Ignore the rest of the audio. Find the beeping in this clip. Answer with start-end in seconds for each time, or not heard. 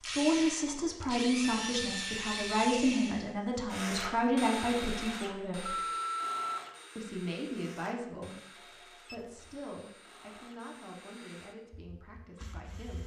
1.4-2.7, 5.7-6.6, 9.1-9.6.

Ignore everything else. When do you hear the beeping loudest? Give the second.
6 s.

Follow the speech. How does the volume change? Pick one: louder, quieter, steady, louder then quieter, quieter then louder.
quieter.